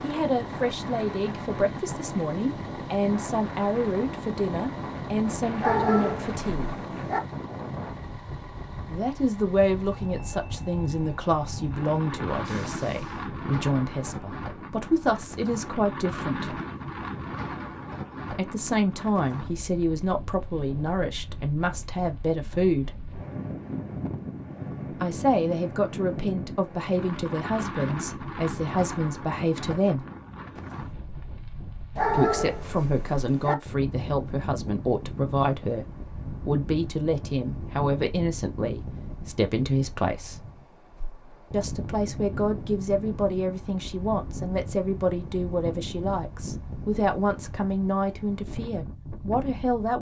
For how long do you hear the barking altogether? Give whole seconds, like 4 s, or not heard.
3 s.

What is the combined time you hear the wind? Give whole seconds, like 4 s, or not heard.
50 s.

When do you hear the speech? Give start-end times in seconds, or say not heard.
0.0-6.8, 8.8-16.6, 18.3-22.9, 24.9-30.1, 32.1-40.4, 41.5-49.9.